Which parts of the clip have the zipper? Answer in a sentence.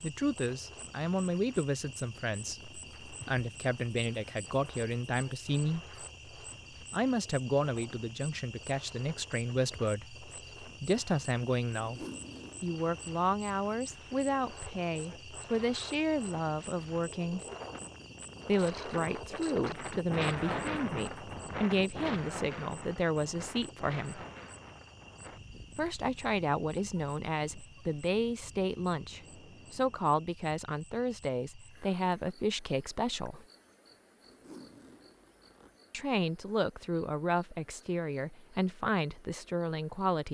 You can hear the zipper from 11.8 to 12.8 s and from 34.2 to 35.8 s.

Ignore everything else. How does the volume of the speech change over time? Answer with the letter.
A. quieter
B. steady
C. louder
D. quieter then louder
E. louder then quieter
B.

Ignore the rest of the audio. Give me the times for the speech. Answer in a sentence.
The speech can be heard from 0.0 to 5.8 s, from 6.8 to 17.4 s, from 18.4 to 24.2 s, from 25.8 to 33.5 s and from 35.9 to 40.3 s.